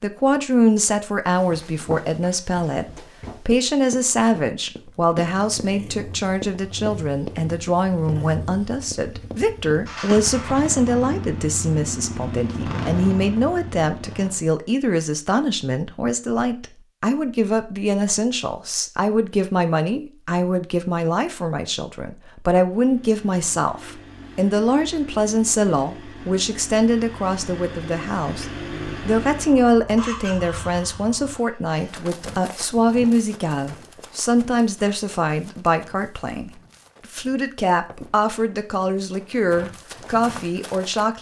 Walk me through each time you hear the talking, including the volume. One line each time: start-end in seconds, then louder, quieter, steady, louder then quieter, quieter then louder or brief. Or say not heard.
0.0-28.4 steady
29.1-41.1 steady.